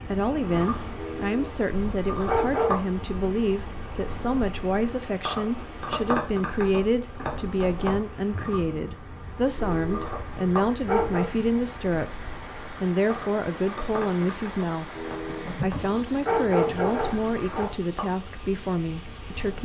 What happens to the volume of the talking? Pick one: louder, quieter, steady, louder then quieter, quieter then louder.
steady.